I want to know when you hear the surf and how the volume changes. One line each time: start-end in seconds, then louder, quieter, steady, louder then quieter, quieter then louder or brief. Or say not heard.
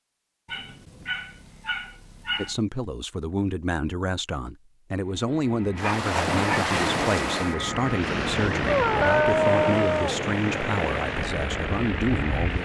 5.8-12.6 quieter.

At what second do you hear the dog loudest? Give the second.
9 s.